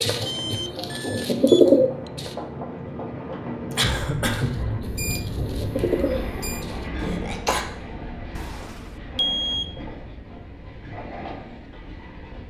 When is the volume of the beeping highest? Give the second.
9 s.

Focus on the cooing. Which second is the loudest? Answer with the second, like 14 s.
2 s.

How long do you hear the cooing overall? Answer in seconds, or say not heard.
5 s.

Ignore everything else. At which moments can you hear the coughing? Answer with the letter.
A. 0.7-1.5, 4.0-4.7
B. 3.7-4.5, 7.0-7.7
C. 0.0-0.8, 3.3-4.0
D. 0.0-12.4
B.